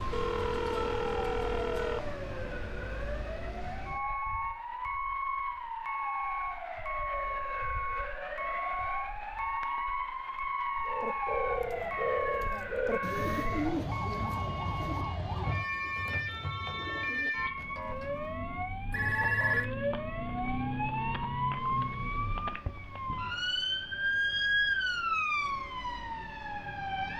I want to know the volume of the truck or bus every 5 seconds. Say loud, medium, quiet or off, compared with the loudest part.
medium, loud, loud, medium, quiet, quiet.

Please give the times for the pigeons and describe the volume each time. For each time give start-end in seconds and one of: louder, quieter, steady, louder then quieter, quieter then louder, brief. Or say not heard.
10.8-18.4 quieter.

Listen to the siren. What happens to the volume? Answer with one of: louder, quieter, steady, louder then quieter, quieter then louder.
louder.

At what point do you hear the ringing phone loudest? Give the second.
19 s.